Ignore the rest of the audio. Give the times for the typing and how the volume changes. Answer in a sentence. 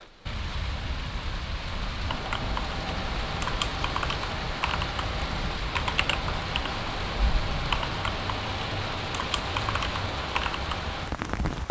The typing can be heard from 2.0 to 11.1 s, at a steady volume.